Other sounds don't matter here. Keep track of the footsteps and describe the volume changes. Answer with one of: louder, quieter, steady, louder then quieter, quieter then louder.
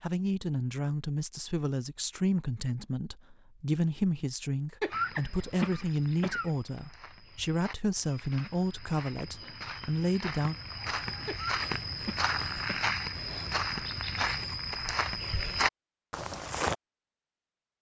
louder.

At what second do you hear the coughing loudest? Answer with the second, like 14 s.
5 s.